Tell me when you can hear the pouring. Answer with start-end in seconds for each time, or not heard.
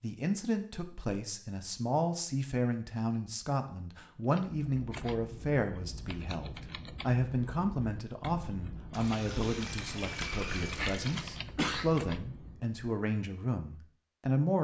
8.9-11.2.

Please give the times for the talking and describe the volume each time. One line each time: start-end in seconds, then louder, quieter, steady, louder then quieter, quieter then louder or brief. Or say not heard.
0.0-14.5 steady.